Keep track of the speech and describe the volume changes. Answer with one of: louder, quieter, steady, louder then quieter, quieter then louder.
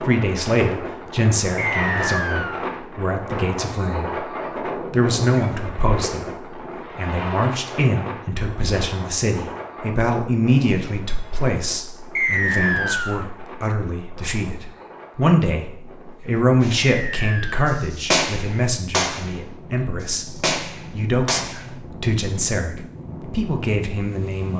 steady.